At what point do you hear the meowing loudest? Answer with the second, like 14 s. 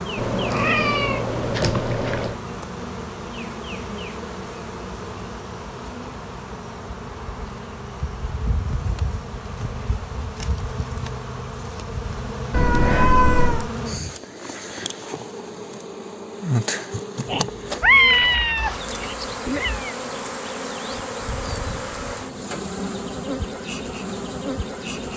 18 s.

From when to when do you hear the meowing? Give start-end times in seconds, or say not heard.
0.1-2.4, 12.5-13.7, 17.2-19.9.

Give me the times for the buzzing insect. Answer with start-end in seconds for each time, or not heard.
0.0-25.1.